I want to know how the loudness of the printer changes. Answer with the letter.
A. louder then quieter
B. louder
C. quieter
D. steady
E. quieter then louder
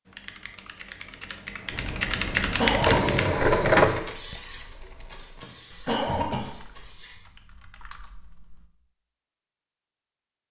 A.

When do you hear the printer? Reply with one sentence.
The printer can be heard from 1.7 to 7.2 s.